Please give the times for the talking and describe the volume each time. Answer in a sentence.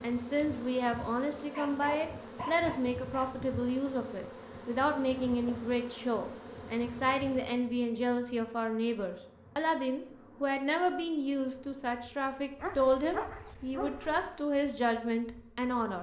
The talking can be heard from 0.0 to 15.9 s, at a steady volume.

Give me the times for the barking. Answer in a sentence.
You can hear the barking from 1.4 to 3.4 s and from 12.6 to 14.2 s.